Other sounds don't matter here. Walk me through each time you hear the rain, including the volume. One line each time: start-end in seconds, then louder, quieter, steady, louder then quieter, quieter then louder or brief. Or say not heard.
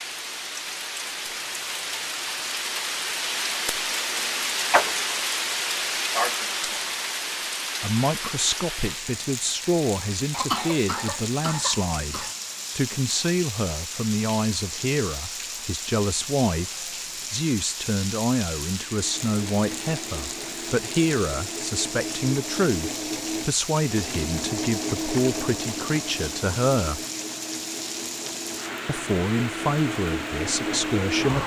0.0-31.4 quieter.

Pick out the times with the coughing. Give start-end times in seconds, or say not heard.
10.3-12.3.